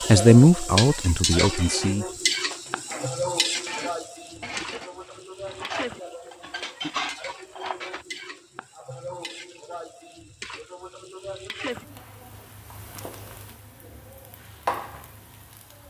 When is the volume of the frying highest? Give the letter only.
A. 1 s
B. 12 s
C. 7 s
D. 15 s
A.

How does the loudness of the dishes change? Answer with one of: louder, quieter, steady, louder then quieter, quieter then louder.
louder.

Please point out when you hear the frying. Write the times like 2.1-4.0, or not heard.
0.0-15.8.